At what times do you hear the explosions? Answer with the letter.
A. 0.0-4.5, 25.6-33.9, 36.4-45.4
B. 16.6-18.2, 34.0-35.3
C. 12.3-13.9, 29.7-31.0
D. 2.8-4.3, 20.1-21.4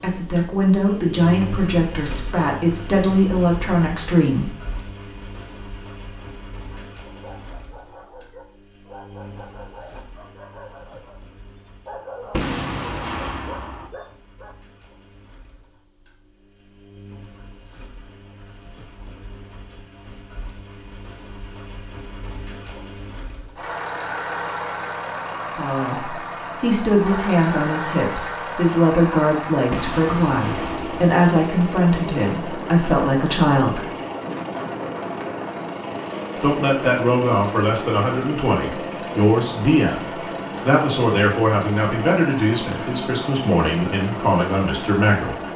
C.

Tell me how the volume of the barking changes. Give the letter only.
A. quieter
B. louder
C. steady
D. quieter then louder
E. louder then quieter
B.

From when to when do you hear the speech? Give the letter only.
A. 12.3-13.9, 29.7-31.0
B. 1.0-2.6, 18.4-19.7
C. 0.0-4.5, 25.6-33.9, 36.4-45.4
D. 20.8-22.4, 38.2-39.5
C.